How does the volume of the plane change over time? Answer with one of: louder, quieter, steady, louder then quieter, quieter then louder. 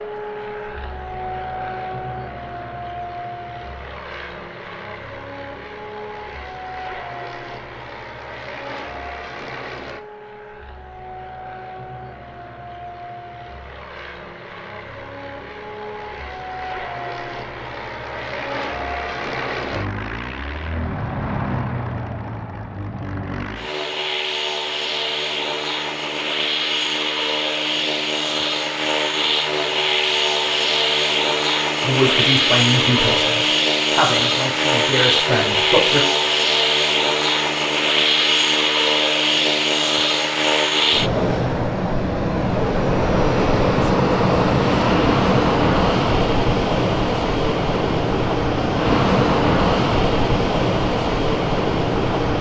louder.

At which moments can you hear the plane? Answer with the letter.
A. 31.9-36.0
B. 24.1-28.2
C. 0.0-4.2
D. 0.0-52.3
D.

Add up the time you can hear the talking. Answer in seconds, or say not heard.
4 s.